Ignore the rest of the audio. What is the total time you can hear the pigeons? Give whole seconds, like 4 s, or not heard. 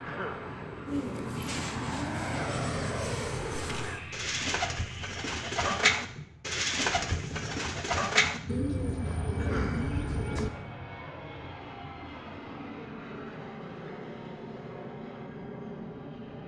10 s.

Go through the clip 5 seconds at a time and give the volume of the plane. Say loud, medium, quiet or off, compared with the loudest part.
loud, medium, medium, medium.